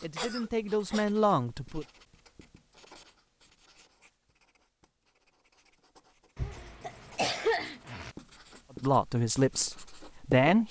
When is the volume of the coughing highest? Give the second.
7 s.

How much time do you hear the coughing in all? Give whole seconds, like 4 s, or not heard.
3 s.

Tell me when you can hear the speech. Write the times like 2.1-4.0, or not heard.
0.0-1.9, 8.8-10.6.